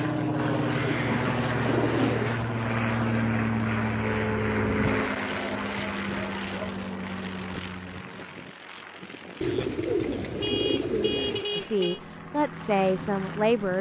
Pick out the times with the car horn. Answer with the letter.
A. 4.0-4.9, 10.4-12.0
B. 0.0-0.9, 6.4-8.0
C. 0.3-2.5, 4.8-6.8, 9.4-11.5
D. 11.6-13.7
A.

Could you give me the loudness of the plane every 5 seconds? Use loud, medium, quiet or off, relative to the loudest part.
loud, medium, quiet.